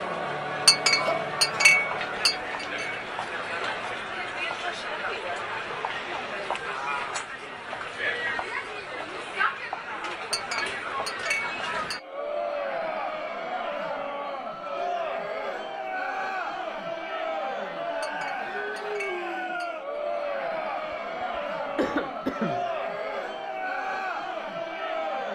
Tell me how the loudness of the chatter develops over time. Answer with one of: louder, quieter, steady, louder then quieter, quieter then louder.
steady.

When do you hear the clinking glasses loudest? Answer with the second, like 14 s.
2 s.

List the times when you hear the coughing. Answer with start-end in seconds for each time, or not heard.
0.9-1.8, 21.8-22.6.